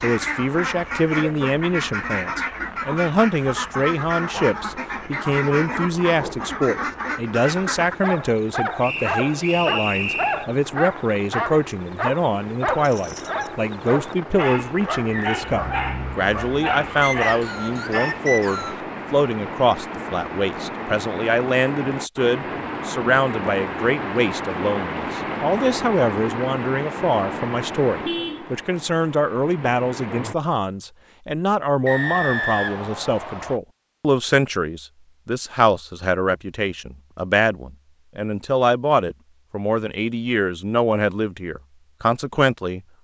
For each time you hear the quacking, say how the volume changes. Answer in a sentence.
You can hear the quacking from 0.0 to 8.0 s, at a steady volume.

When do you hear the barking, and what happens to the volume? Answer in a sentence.
You can hear the barking from 7.8 to 18.2 s, at a steady volume.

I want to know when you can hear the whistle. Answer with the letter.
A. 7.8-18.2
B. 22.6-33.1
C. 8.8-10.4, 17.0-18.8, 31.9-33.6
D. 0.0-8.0
C.